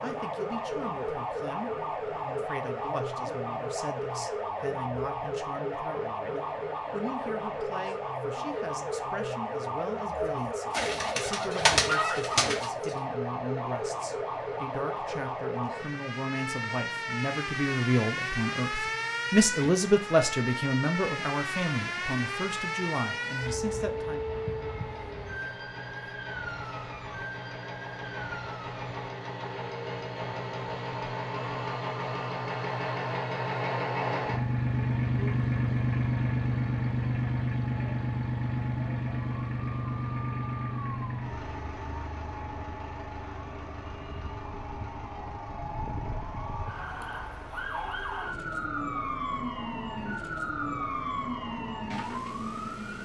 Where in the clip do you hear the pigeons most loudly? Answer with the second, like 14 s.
12 s.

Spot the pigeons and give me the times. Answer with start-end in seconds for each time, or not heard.
10.2-12.7.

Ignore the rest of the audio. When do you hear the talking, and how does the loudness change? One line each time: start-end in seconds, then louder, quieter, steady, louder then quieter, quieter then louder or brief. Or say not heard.
0.0-24.2 louder.